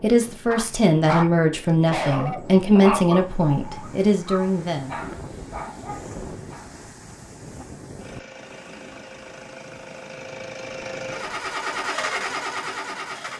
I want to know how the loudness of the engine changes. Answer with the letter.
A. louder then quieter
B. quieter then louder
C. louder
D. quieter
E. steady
C.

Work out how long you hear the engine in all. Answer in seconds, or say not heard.
5 s.